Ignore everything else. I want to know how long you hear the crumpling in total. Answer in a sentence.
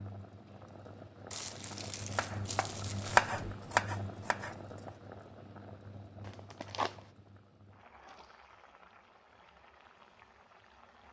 The crumpling can be heard for 3 seconds in total.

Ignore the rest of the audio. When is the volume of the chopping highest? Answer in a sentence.
The volume of the chopping peaks at 3 seconds.